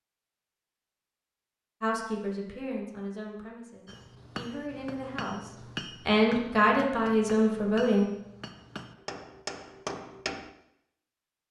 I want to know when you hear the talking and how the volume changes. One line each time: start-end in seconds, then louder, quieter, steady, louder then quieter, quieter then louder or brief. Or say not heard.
1.8-8.1 quieter then louder.